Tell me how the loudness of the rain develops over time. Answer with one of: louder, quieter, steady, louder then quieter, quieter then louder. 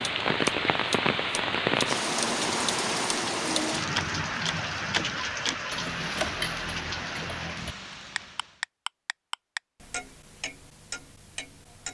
quieter.